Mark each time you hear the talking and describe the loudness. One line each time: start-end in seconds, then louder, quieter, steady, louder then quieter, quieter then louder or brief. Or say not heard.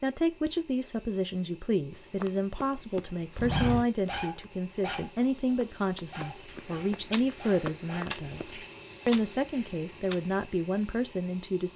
0.0-11.7 steady.